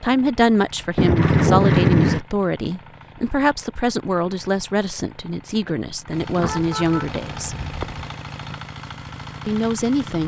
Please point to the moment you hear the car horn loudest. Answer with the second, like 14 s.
2 s.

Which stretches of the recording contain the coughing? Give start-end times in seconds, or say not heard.
not heard.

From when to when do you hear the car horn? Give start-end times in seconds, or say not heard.
0.9-2.2, 6.2-8.1.